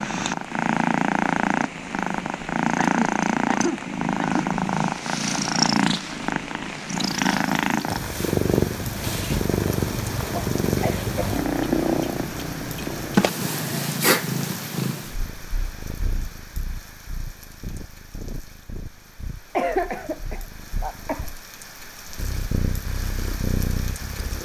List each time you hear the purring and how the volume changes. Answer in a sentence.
You can hear the purring from 0.0 to 24.3 s, getting quieter.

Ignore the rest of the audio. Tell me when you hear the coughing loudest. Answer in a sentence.
The volume of the coughing peaks at 20 seconds.